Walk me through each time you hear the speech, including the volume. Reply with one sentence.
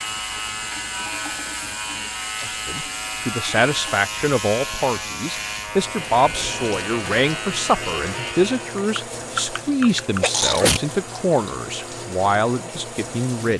You can hear the speech from 2.4 to 13.5 s, at a steady volume.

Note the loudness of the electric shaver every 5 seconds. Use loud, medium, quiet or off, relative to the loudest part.
loud, loud, off.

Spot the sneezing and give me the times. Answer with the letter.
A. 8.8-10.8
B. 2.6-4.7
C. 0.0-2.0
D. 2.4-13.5
A.